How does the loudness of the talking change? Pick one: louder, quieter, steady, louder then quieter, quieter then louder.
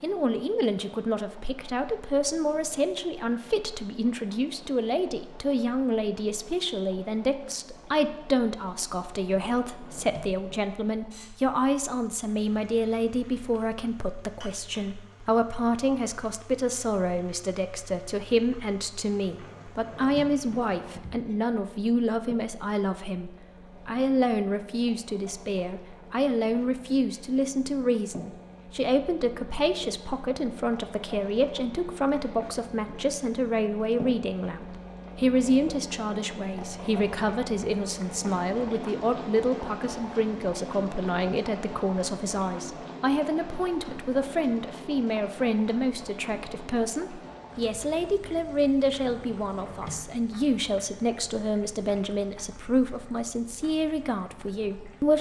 steady.